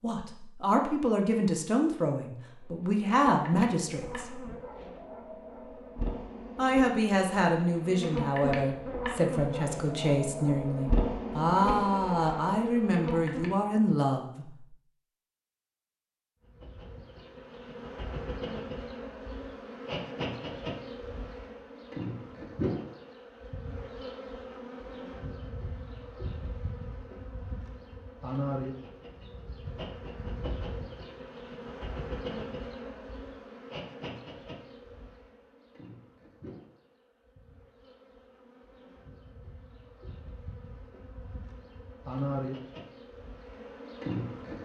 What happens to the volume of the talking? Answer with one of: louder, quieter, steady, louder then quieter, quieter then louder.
steady.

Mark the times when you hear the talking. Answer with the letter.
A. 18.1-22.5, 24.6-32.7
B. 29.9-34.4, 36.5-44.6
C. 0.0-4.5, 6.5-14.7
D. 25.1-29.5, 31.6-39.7
C.